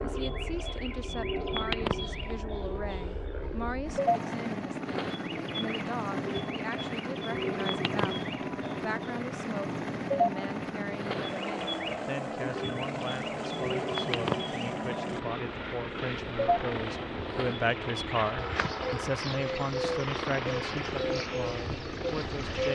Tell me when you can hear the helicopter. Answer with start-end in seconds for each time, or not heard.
0.0-22.6.